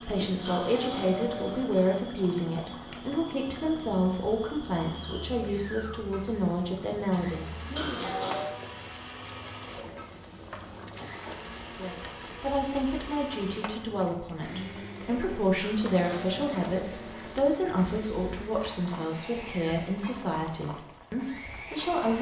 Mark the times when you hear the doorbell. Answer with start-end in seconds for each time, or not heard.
0.5-1.6, 7.8-8.6, 15.6-17.4.